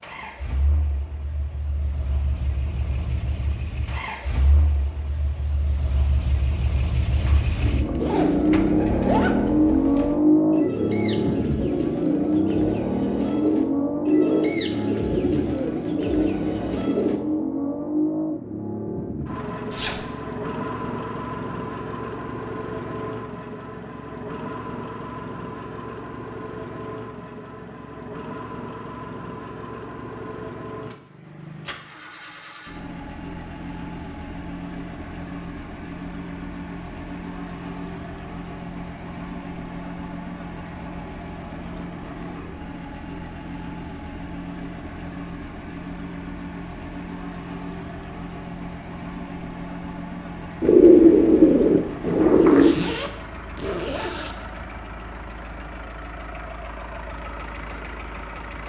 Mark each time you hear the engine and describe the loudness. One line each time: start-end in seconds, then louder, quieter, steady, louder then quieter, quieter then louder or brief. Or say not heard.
0.0-58.6 quieter.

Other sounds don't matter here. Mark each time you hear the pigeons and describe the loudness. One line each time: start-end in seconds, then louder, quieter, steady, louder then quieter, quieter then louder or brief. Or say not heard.
7.2-17.2 louder
50.6-52.8 brief.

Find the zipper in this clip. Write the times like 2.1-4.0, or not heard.
8.0-9.3, 19.7-20.1, 52.4-54.4.